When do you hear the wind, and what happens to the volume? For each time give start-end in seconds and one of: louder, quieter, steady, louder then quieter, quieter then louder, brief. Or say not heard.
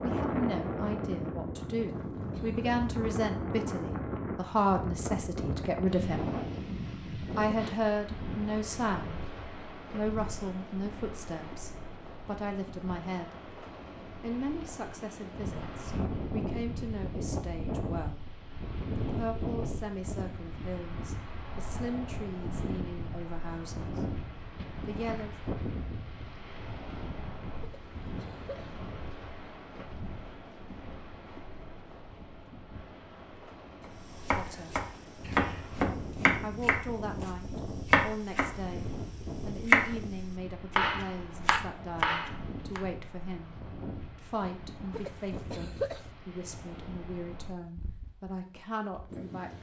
0.0-49.5 quieter.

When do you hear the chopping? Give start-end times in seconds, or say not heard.
33.9-42.8.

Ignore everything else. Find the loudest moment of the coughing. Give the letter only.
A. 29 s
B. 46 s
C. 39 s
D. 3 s
B.